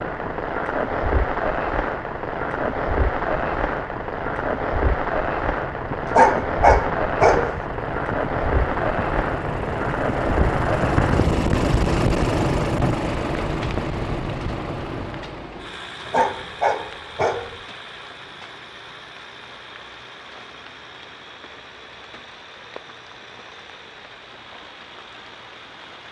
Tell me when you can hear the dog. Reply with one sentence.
The dog can be heard from 6.0 to 7.6 s and from 16.1 to 17.6 s.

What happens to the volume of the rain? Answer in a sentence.
The volume of the rain goes down.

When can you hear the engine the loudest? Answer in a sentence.
The volume of the engine peaks at 12 seconds.